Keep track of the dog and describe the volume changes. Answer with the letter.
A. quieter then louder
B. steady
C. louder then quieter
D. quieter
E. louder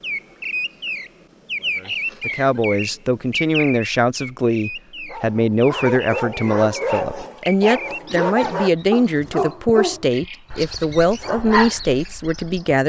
B.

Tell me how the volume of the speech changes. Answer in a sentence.
The volume of the speech stays about the same.